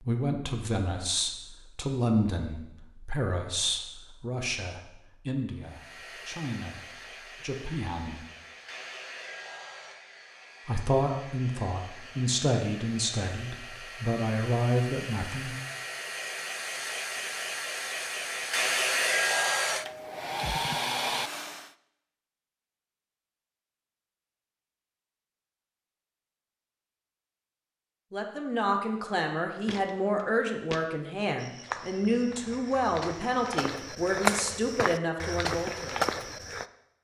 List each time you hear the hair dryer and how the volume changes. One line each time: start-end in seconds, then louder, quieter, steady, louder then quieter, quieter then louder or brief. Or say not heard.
5.7-21.7 louder.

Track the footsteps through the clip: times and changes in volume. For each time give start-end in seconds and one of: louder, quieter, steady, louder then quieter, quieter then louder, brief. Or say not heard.
29.6-36.6 louder.